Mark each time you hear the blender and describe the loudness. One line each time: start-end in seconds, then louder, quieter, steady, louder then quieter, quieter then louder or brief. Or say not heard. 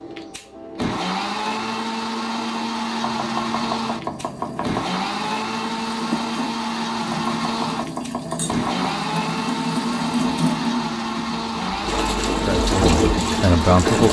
0.0-14.0 steady.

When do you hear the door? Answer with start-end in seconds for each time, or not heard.
not heard.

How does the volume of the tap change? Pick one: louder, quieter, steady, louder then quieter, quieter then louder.
louder.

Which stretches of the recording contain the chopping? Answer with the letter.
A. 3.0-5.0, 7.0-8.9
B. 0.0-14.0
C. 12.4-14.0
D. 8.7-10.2
A.